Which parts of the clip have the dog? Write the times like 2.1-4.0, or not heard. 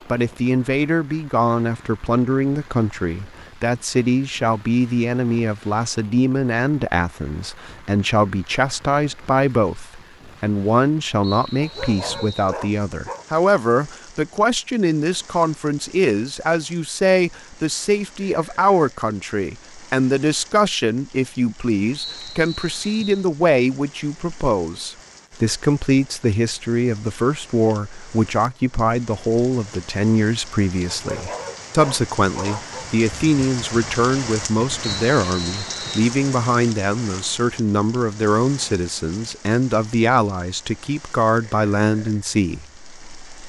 11.6-13.2, 30.9-32.9.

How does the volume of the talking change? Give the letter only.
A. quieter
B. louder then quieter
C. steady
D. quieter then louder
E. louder
C.